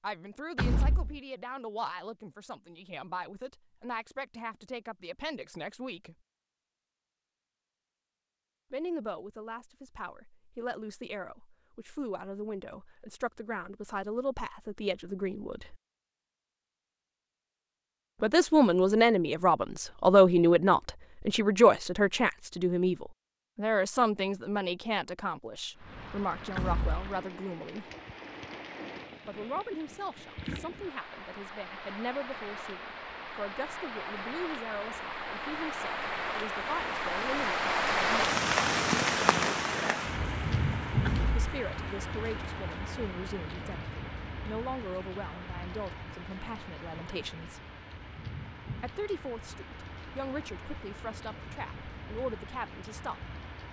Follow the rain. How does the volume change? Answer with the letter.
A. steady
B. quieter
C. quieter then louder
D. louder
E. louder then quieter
E.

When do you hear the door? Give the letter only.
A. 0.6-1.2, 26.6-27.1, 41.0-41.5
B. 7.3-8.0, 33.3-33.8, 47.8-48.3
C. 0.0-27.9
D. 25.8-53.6
A.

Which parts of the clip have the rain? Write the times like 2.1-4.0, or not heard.
25.8-53.6.